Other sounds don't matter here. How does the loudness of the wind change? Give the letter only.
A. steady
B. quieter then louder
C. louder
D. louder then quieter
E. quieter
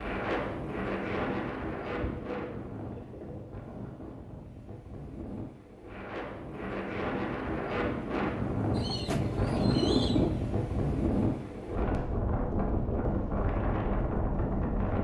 B.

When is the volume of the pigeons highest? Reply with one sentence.
The volume of the pigeons peaks at 10 seconds.